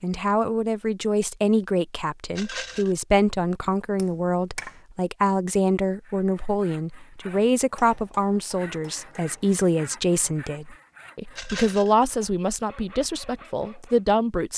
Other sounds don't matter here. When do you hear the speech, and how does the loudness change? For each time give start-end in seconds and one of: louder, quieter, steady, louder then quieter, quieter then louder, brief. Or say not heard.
0.0-14.5 steady.